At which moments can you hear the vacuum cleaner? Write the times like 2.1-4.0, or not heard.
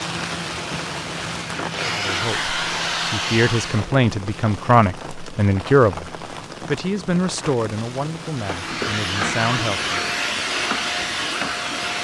0.1-3.9, 8.3-11.9.